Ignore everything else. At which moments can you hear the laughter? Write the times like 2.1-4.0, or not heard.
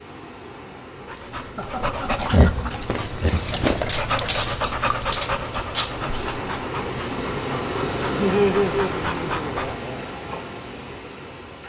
1.6-2.5, 8.2-10.1.